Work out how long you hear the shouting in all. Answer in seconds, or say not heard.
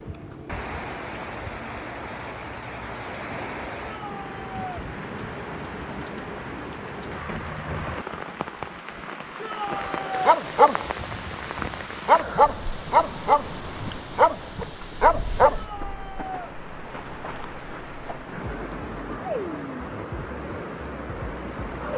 3 s.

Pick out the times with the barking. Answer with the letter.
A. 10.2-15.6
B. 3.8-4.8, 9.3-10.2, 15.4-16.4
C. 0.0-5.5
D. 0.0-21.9
A.